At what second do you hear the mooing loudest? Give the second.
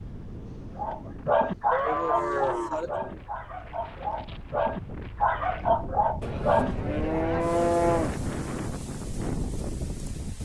8 s.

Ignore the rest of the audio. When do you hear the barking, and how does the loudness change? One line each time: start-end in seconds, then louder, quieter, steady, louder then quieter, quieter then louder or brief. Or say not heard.
0.8-7.2 quieter then louder.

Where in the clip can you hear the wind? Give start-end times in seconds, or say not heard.
0.0-10.4.